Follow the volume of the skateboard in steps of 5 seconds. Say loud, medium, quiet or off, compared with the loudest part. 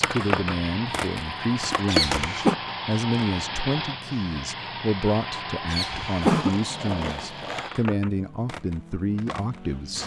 loud, medium.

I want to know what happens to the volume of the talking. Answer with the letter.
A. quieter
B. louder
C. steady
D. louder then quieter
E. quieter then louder
C.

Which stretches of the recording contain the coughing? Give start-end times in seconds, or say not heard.
1.9-2.5, 5.7-6.5.